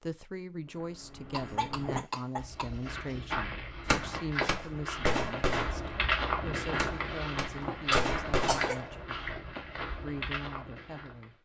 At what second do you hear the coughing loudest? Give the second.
8 s.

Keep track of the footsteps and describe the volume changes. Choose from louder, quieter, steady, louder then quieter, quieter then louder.
louder then quieter.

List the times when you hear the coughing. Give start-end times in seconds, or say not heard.
1.3-3.4, 7.6-8.8.